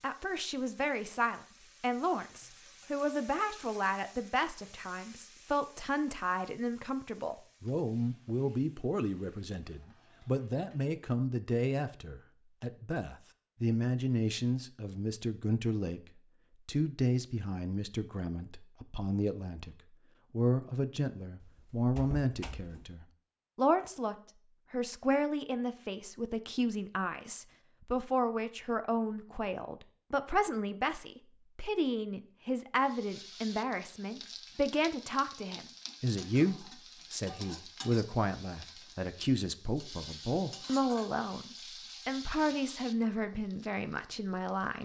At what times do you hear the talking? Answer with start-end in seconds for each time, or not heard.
0.0-16.0, 16.6-44.8.